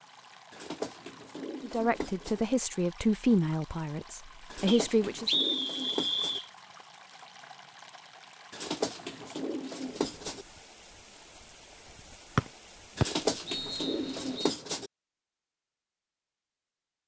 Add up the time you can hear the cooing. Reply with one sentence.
You can hear the cooing for 8 seconds altogether.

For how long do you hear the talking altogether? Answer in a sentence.
You can hear the talking for 4 seconds altogether.